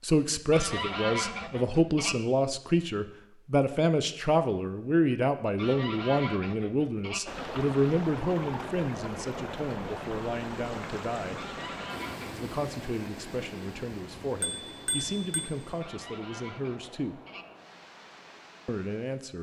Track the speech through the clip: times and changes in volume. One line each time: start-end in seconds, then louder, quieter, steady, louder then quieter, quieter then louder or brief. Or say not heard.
0.0-11.5 quieter
12.3-17.2 steady
18.6-19.3 brief.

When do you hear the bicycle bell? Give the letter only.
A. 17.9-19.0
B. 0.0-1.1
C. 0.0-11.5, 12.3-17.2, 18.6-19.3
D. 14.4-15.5
D.